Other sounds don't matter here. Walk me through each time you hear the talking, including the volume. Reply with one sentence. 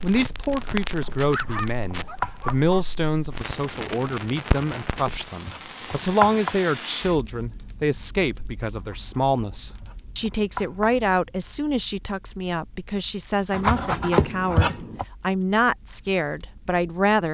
The talking can be heard from 0.0 to 17.2 s, at a steady volume.